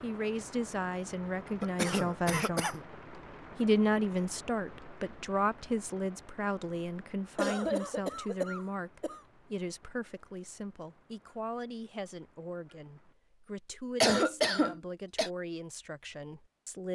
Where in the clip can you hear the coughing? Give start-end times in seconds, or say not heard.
1.6-2.8, 7.3-9.2, 14.0-15.3.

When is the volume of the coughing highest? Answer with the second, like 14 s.
14 s.